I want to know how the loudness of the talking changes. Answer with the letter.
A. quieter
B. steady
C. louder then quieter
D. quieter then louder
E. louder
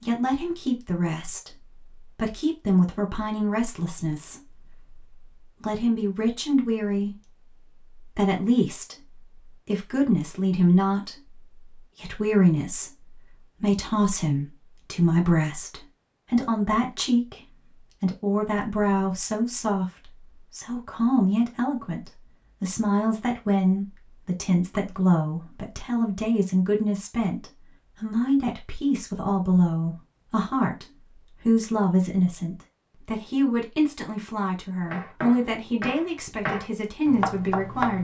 B.